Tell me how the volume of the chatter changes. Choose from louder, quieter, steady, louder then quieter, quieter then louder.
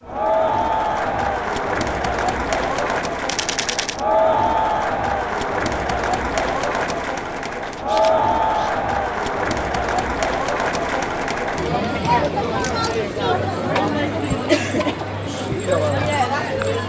steady.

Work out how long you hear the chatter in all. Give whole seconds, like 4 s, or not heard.
17 s.